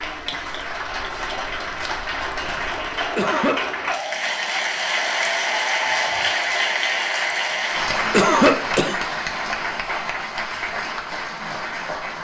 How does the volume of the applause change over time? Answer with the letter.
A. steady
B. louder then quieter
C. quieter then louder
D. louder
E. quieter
B.